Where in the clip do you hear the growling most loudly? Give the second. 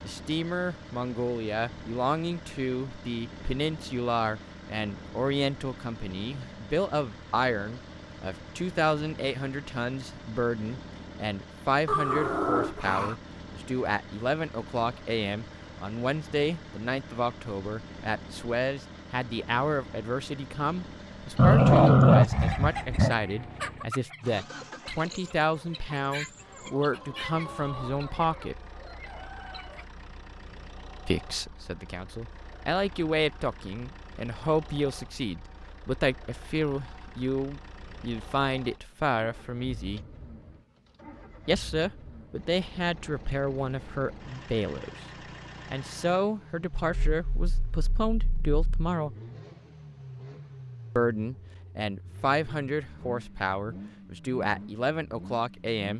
22 s.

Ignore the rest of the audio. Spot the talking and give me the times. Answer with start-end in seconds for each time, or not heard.
0.0-28.6, 31.1-40.0, 41.5-45.0, 45.6-49.1, 51.0-55.9.